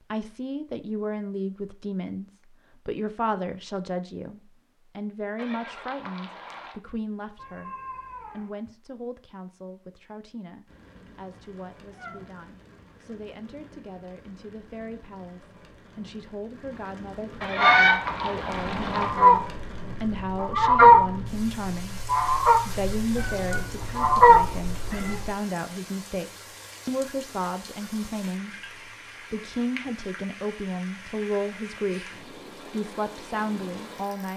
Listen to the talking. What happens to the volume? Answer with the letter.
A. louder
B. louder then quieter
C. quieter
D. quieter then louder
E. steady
D.